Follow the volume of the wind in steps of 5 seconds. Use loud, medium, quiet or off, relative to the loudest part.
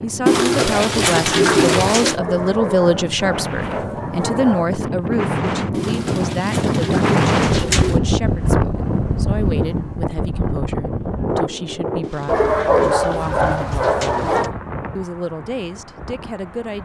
medium, loud, medium, quiet.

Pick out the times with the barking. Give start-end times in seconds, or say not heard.
2.1-4.7, 12.2-14.6.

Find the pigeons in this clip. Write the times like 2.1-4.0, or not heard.
0.2-2.2, 5.7-8.0, 12.0-14.5.